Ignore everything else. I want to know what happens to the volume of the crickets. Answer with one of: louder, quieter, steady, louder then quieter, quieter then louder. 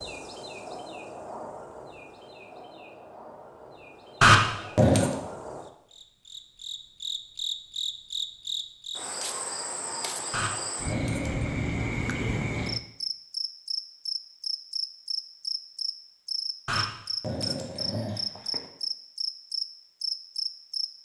louder.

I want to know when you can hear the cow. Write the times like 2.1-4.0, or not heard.
not heard.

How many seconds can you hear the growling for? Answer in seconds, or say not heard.
4 s.